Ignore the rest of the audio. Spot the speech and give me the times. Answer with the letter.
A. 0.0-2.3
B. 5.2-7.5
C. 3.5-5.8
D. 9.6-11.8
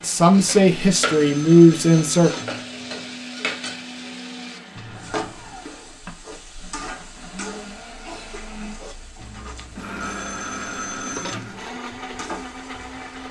A.